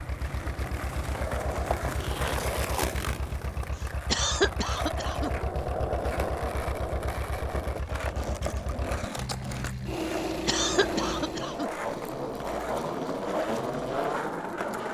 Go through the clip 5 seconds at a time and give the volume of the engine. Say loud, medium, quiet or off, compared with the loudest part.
medium, medium, loud.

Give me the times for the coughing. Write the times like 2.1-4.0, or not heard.
4.0-5.3, 10.4-11.7.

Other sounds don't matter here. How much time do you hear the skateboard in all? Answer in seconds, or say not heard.
15 s.